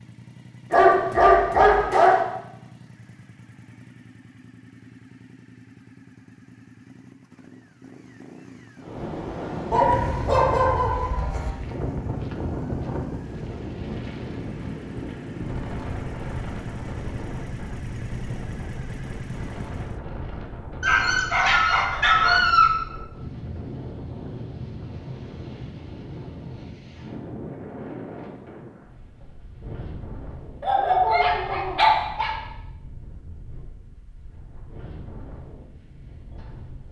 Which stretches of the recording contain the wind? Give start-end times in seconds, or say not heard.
8.8-36.8.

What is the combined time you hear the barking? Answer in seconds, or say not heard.
7 s.